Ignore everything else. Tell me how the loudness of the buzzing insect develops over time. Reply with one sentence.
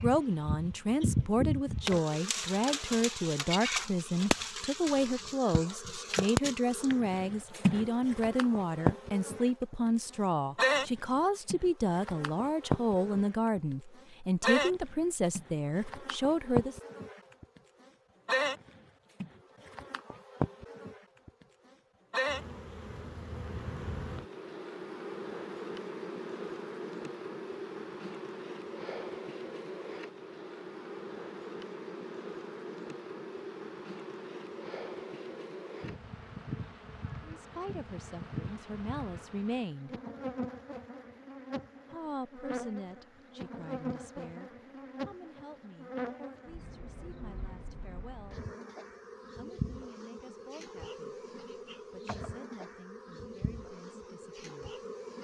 The loudness of the buzzing insect goes down.